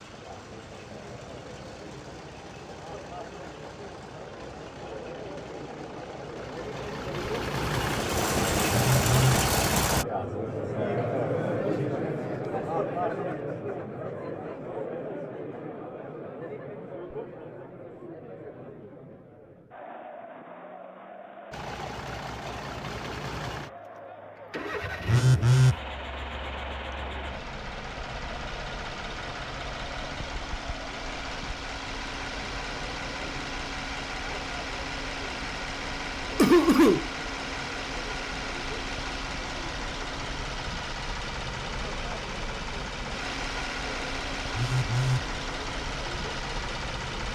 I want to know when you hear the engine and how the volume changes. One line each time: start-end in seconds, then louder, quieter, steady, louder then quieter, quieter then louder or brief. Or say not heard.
0.0-10.1 louder
21.5-47.3 steady.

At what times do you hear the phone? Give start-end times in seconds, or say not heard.
8.7-9.4, 25.1-25.8, 44.5-45.2.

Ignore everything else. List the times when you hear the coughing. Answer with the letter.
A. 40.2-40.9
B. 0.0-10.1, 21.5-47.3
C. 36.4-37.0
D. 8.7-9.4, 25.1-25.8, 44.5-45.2
C.